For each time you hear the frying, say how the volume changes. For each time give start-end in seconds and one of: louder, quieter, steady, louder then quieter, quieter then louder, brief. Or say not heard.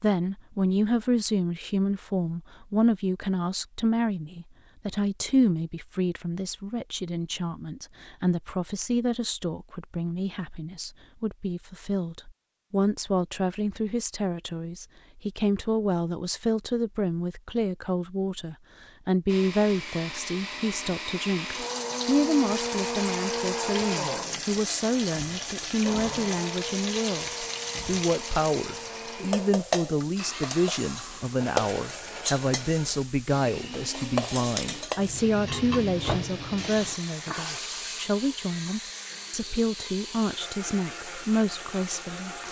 21.4-42.4 quieter.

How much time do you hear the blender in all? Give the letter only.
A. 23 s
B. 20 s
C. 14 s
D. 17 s
A.